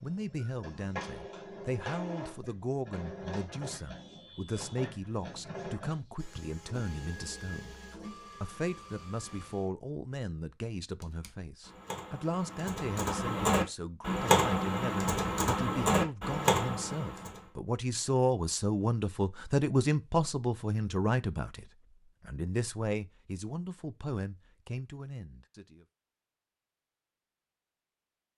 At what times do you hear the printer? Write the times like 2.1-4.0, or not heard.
0.0-9.7.